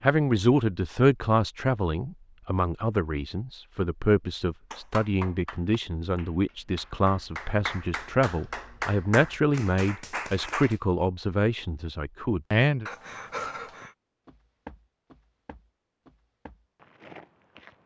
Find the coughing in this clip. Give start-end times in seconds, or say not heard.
12.8-13.9.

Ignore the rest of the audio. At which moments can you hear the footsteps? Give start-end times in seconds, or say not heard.
12.9-17.8.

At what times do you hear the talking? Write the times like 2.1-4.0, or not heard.
0.0-12.8.